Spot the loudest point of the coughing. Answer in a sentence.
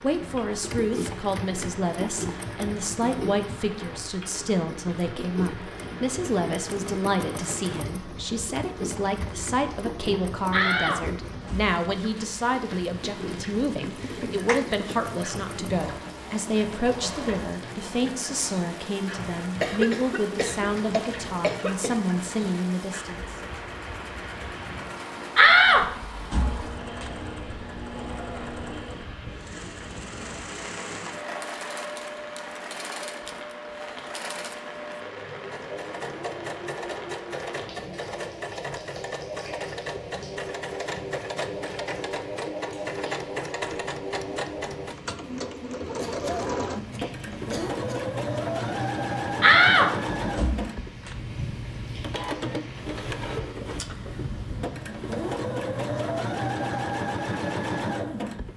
The loudest moment of the coughing is at 20 seconds.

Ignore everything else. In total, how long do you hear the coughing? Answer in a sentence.
The coughing can be heard for 5 seconds in total.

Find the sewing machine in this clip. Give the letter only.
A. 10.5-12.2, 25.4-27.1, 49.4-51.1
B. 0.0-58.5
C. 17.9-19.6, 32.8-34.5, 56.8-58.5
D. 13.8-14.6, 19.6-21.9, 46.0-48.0
B.